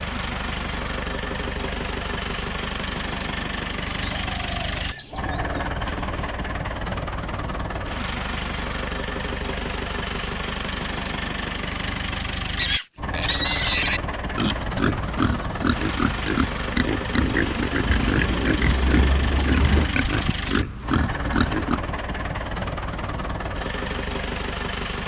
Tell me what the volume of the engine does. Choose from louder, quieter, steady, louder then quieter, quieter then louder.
steady.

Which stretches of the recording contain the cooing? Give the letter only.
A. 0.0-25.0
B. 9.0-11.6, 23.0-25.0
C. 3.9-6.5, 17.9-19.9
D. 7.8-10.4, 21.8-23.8
C.